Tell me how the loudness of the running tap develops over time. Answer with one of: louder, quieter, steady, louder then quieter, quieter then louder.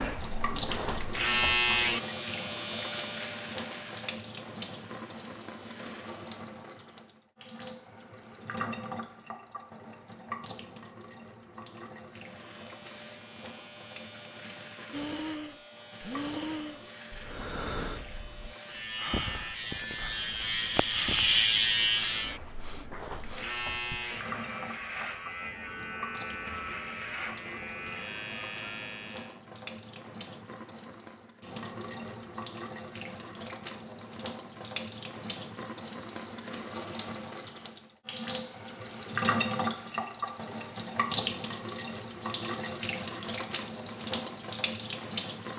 quieter then louder.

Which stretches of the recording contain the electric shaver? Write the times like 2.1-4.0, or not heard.
0.0-6.2, 12.1-29.4.